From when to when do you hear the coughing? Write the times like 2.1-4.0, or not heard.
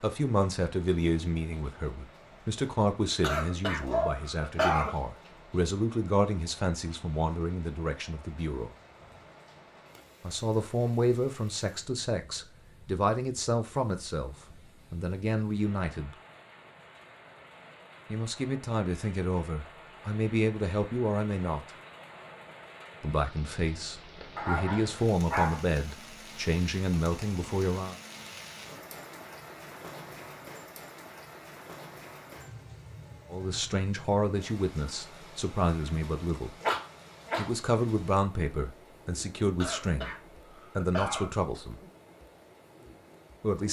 3.2-5.0, 39.6-41.3.